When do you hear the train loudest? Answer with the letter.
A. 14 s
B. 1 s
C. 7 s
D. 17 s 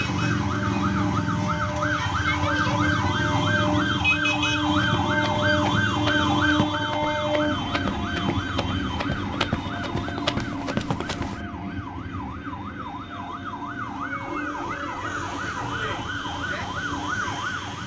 C.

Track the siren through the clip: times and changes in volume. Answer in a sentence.
The siren can be heard from 0.0 to 17.8 s, getting quieter then louder.